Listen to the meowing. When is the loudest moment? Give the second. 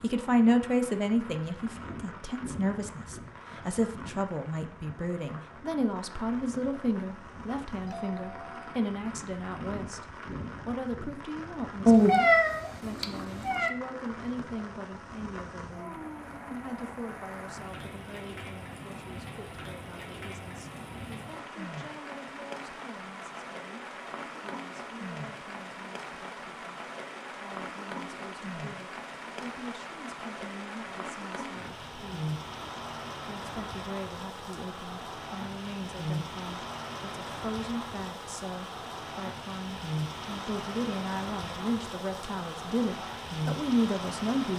12 s.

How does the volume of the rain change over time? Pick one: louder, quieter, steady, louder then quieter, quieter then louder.
louder.